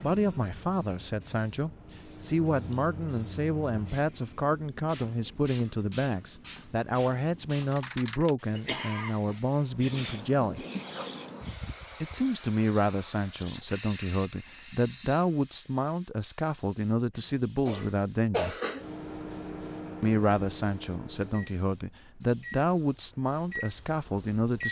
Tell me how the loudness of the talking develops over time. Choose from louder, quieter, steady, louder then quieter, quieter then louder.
steady.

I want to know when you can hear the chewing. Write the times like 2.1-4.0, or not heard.
not heard.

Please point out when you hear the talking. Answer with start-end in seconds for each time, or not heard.
0.0-10.7, 12.0-18.6, 20.0-24.6.